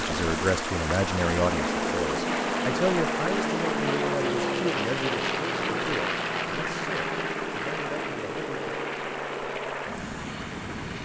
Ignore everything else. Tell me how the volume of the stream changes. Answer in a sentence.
The volume of the stream goes down.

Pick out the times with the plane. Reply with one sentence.
You can hear the plane from 0.0 to 11.0 s.